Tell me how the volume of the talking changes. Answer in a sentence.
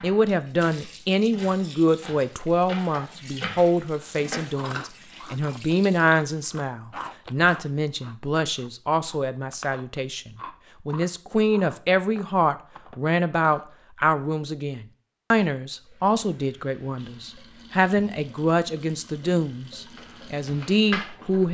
The loudness of the talking stays about the same.